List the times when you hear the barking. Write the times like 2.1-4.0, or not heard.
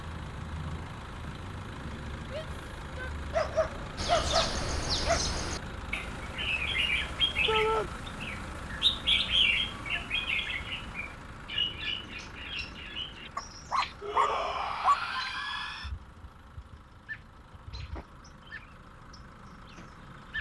3.3-5.2, 13.3-15.0.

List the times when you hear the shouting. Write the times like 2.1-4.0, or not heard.
2.2-3.2, 7.5-7.9, 14.0-15.9.